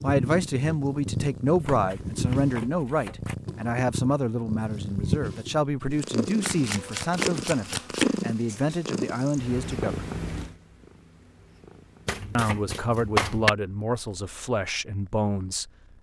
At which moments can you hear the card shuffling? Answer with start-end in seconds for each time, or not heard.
1.6-3.4, 6.4-8.2, 12.1-13.5.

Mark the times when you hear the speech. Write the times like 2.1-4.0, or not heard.
0.0-10.1, 12.3-15.7.